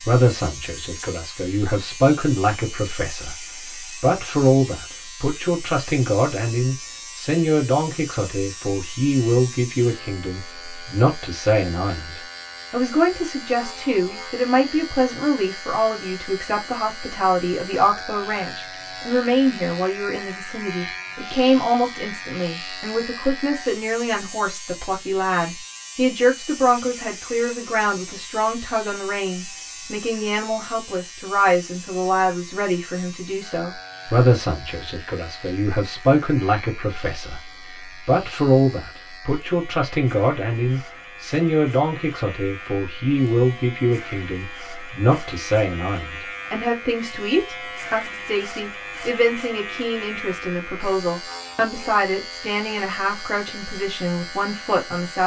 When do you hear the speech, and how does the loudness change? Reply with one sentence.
You can hear the speech from 0.0 to 55.2 s, at a steady volume.